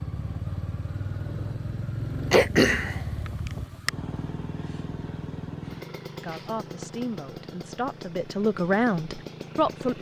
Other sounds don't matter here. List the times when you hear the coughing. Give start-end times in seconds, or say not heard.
2.3-3.9.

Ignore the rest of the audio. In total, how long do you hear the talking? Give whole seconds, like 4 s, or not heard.
4 s.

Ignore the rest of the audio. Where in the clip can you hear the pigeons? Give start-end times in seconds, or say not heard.
not heard.